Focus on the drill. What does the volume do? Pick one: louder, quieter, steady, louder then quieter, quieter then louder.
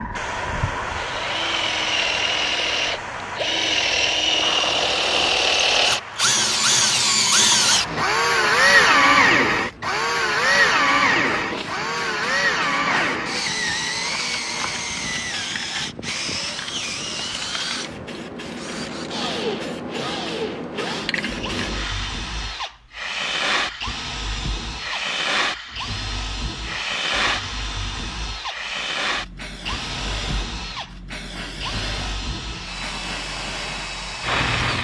quieter.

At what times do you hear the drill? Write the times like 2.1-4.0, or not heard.
0.0-34.7.